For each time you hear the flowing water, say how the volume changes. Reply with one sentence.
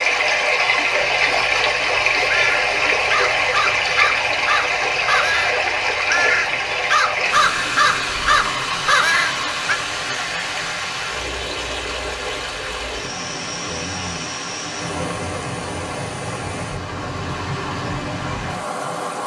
You can hear the flowing water from 0.0 to 19.2 s, getting quieter.